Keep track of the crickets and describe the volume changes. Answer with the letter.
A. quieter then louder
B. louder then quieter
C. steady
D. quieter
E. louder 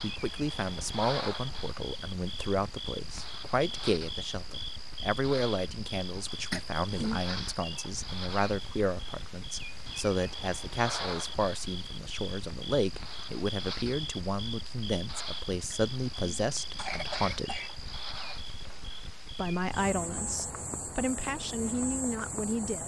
C.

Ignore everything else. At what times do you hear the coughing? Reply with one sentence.
The coughing can be heard from 6.5 to 7.2 s and from 15.7 to 17.7 s.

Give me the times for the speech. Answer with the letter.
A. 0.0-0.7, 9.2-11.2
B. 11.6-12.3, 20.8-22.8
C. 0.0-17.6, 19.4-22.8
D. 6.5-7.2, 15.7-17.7
C.